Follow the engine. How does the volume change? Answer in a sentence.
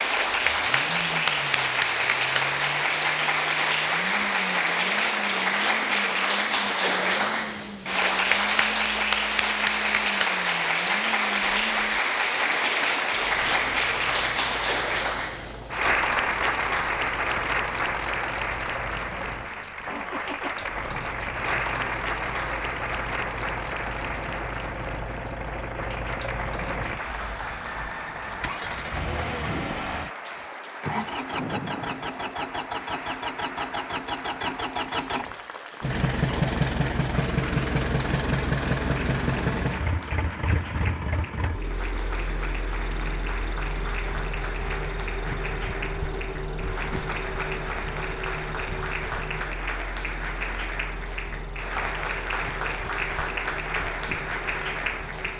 The volume of the engine goes up, then down.